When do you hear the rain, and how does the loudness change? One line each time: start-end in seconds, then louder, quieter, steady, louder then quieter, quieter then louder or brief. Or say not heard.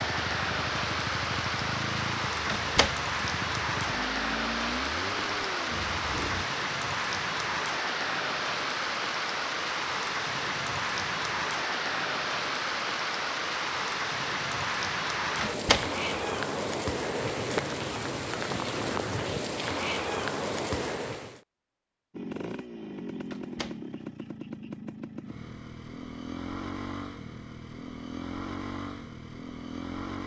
0.0-21.4 steady.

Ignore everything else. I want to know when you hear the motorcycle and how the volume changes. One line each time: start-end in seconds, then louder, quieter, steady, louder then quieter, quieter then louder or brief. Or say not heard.
0.0-6.5 steady
22.1-30.2 steady.